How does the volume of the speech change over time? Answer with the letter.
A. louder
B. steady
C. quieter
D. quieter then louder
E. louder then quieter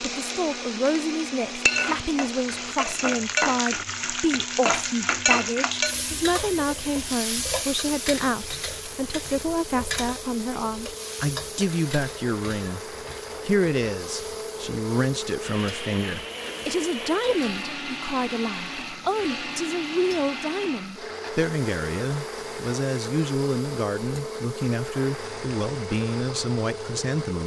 B.